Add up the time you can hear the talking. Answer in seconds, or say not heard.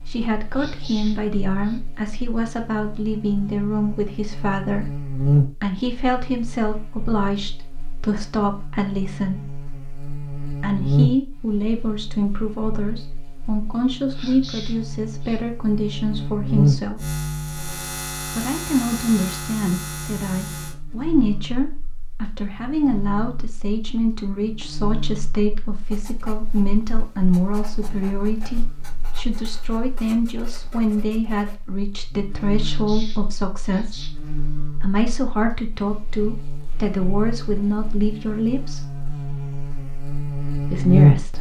37 s.